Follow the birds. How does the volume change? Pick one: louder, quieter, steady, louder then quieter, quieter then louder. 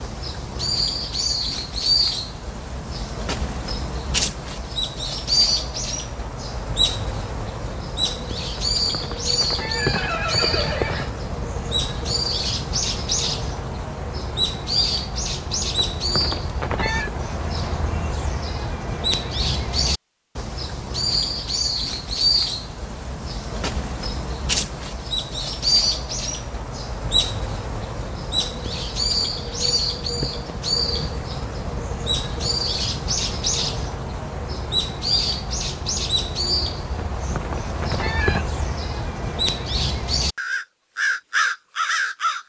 steady.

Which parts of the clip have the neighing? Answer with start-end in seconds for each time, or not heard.
8.6-11.1, 15.8-17.1, 37.1-38.5.